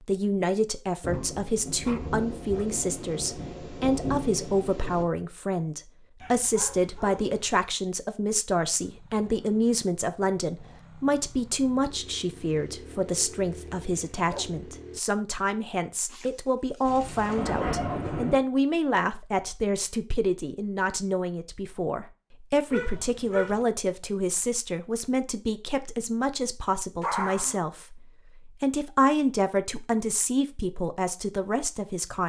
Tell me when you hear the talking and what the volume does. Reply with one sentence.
The talking can be heard from 0.1 to 32.2 s, at a steady volume.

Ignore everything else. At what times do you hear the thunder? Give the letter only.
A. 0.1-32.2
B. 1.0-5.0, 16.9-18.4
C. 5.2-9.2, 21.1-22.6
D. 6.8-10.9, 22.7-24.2
B.